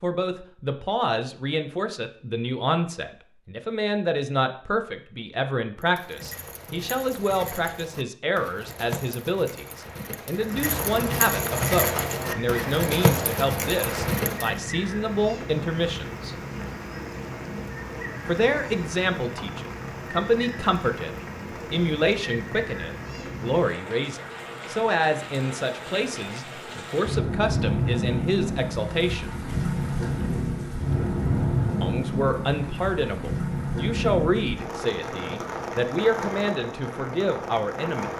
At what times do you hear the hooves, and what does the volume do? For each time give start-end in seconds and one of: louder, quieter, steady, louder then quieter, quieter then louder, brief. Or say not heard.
5.8-14.6 louder.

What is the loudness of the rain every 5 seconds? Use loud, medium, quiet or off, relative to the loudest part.
off, off, medium, medium, medium, loud, loud, medium.